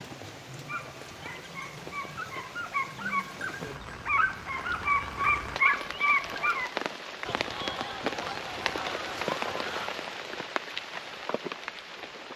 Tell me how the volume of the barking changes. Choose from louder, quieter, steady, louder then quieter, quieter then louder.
louder.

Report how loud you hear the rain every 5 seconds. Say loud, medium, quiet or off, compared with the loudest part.
medium, loud, loud.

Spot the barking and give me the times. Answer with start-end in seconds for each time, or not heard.
0.7-6.7.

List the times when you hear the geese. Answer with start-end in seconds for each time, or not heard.
7.2-9.9.